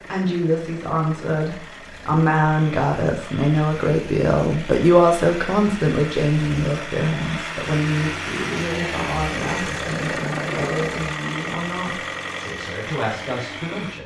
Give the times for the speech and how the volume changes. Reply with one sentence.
You can hear the speech from 0.1 to 14.0 s, getting quieter.